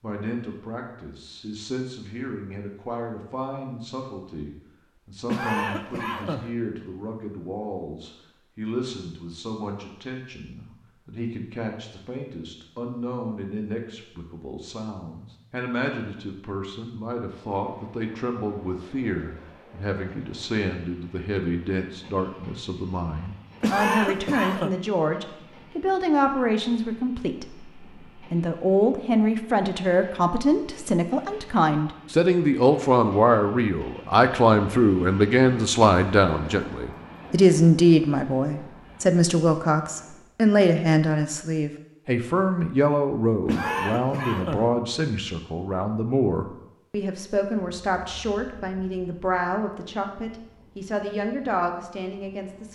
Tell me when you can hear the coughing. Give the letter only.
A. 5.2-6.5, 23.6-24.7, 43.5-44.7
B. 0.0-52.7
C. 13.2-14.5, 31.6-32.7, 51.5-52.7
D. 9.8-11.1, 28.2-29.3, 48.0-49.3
A.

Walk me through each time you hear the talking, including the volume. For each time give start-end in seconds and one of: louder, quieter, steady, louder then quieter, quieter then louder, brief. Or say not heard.
0.0-52.7 louder then quieter.